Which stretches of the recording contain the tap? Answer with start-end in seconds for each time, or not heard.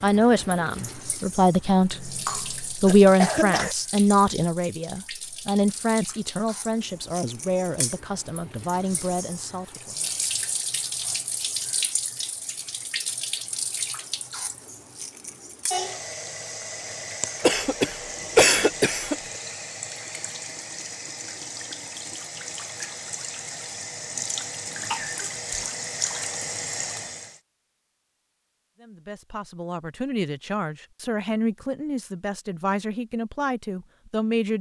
0.0-27.4.